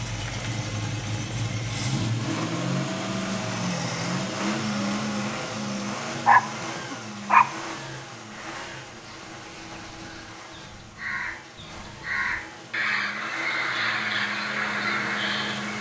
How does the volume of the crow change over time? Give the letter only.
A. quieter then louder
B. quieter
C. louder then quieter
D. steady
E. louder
E.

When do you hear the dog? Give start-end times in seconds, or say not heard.
4.7-7.5.